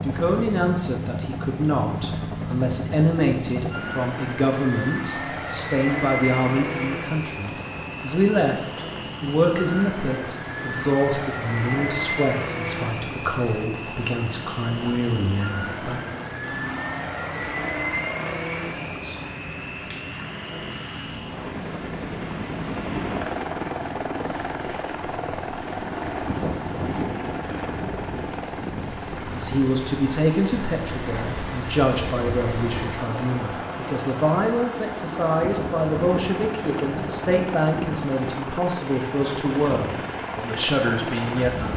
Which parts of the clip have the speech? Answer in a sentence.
You can hear the speech from 0.0 to 16.0 s and from 28.8 to 41.7 s.